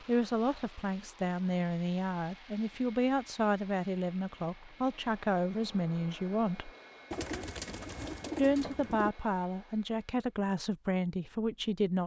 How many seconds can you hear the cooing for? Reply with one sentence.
The cooing can be heard for 2 seconds in total.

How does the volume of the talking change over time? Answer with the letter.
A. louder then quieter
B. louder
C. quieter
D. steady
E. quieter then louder
D.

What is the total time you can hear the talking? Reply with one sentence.
You can hear the talking for 10 seconds altogether.